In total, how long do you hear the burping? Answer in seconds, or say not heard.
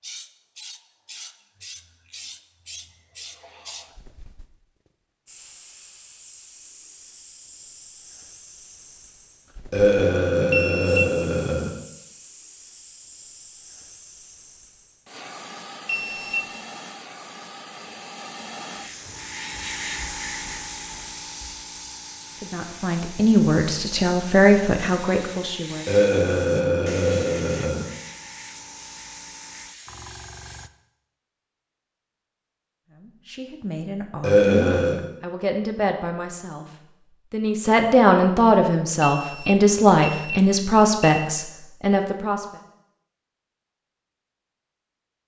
5 s.